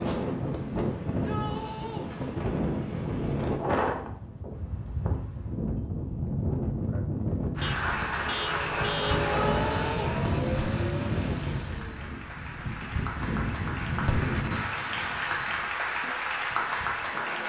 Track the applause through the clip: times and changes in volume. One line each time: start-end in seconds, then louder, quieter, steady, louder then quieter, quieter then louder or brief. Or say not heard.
7.5-17.4 quieter then louder.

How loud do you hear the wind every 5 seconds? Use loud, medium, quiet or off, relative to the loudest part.
loud, loud, loud, quiet.